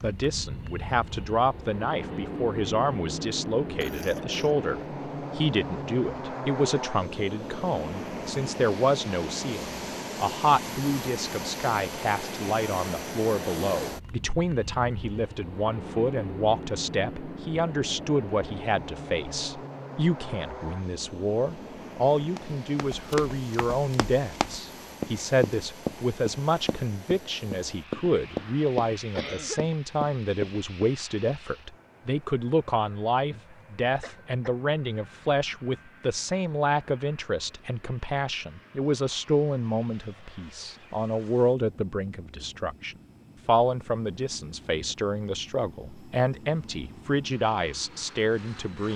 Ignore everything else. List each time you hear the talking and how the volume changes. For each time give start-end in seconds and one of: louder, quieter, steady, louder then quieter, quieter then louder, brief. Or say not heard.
0.0-48.9 steady.